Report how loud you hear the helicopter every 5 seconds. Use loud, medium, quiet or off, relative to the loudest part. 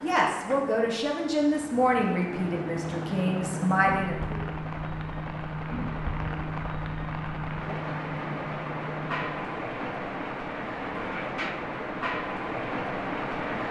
loud, loud, off.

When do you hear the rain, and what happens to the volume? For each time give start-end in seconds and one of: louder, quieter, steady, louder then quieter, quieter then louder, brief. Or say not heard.
0.0-13.6 louder.